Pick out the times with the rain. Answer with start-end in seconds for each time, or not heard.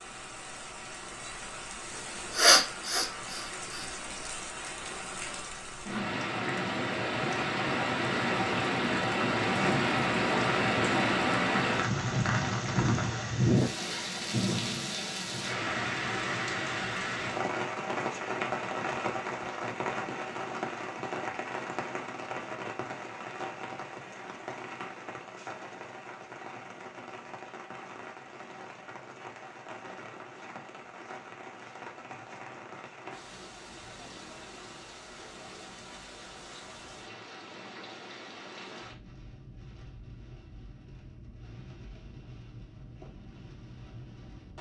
0.0-44.5.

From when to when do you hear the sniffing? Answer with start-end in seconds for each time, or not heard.
2.3-3.9.